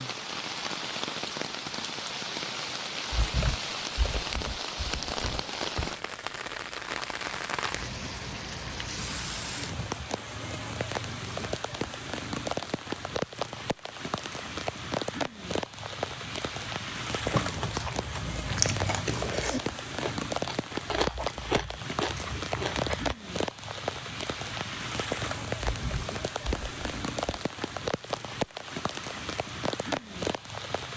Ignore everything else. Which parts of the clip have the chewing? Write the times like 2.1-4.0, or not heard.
17.2-23.1.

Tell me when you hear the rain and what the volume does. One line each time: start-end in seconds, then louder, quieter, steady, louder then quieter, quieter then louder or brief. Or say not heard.
0.0-30.9 steady.